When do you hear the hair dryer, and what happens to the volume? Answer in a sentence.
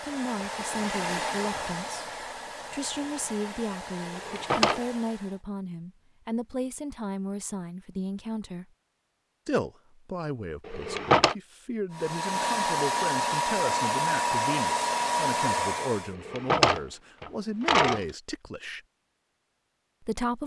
You can hear the hair dryer from 0.0 to 5.4 s, getting quieter; and from 11.9 to 16.1 s, at a steady volume.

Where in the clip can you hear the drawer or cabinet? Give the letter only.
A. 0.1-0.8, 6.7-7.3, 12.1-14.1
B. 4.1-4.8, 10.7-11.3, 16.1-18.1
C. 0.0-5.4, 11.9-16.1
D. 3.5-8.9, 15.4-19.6
B.